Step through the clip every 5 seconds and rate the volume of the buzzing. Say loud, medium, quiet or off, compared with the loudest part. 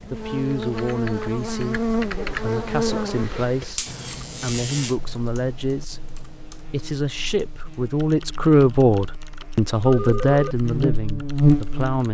medium, quiet, loud.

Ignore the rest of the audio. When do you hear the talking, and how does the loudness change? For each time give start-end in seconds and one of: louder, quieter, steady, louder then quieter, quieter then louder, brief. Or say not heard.
0.1-12.0 louder.